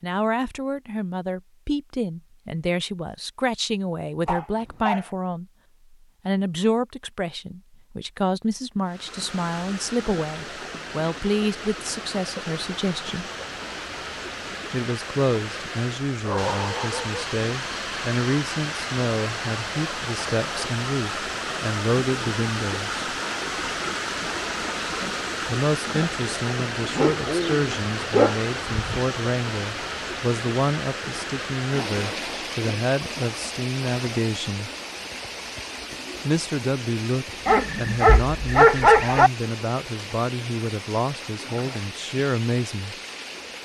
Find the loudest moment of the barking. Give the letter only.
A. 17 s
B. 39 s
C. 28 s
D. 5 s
B.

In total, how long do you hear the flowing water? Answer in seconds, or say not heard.
35 s.